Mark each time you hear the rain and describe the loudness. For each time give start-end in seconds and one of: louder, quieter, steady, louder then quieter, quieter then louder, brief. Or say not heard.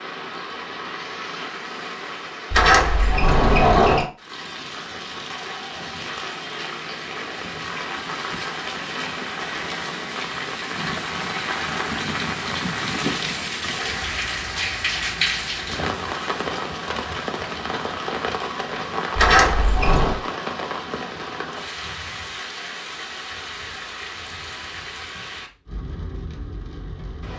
0.0-27.3 louder then quieter.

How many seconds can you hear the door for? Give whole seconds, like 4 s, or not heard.
3 s.